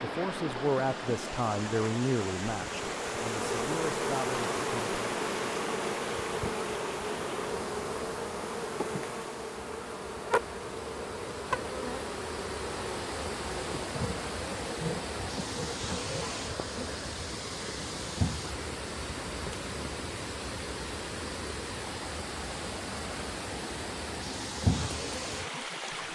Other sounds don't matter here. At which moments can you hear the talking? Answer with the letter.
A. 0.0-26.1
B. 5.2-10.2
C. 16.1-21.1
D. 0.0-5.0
D.